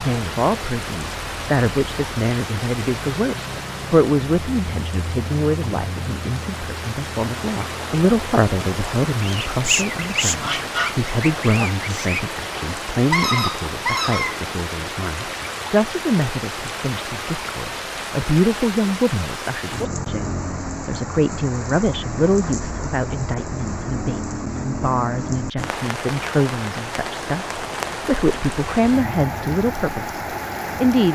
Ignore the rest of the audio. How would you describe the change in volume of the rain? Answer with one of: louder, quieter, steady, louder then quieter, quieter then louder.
steady.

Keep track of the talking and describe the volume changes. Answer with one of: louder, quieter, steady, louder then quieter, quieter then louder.
steady.